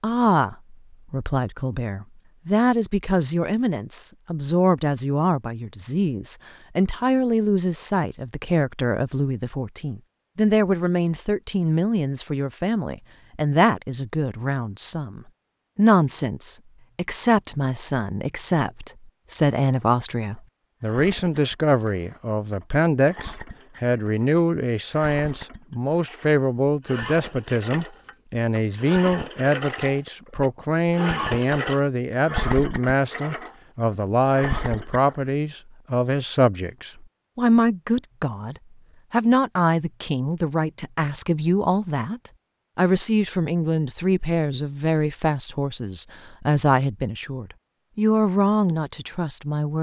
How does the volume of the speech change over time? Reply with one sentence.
The volume of the speech stays about the same.